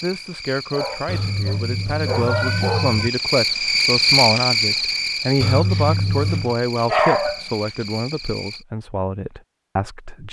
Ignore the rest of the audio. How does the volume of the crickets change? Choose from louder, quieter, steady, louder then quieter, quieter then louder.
louder then quieter.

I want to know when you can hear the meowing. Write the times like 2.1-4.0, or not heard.
1.1-3.1, 5.4-6.5.